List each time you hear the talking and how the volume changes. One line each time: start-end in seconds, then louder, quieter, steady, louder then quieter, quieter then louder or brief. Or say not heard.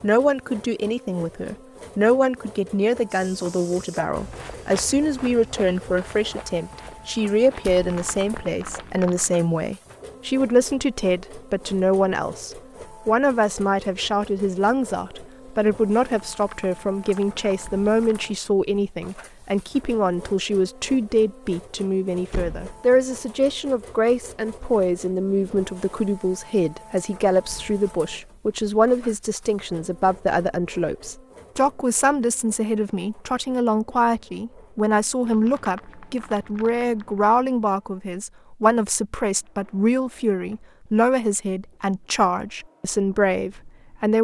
0.0-44.1 steady.